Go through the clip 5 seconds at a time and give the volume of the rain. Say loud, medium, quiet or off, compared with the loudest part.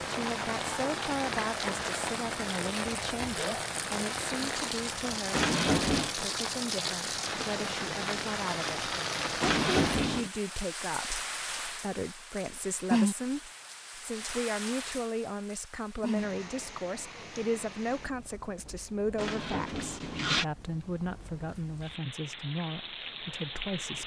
loud, loud, loud, medium, medium.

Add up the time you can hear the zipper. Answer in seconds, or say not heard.
3 s.